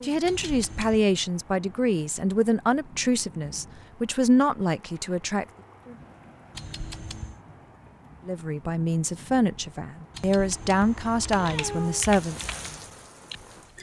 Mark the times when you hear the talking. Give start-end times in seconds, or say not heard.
0.0-5.5, 8.2-12.4.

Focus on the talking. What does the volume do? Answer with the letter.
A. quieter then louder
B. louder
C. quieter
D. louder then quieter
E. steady
E.